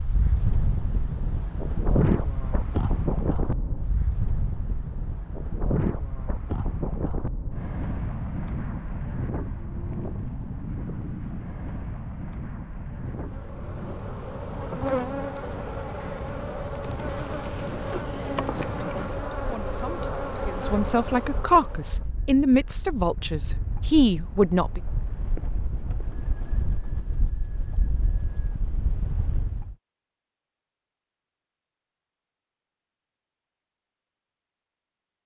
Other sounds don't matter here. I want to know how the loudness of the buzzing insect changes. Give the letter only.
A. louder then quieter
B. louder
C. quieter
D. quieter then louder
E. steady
E.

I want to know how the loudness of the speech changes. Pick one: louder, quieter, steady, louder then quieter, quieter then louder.
louder.